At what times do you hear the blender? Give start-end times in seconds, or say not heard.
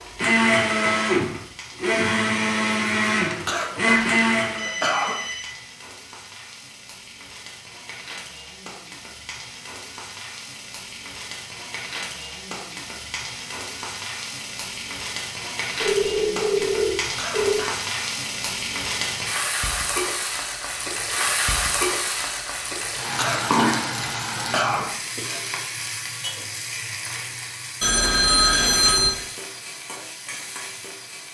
0.1-4.7.